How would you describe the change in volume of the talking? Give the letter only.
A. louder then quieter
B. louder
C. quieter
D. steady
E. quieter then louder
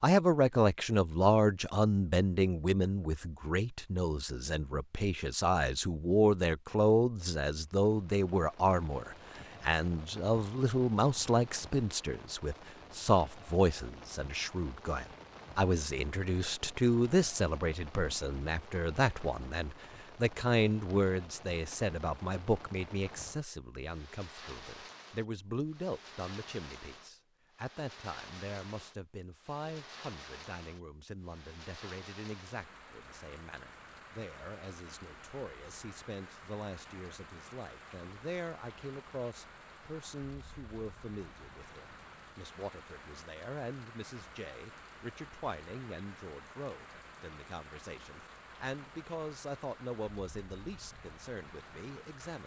C.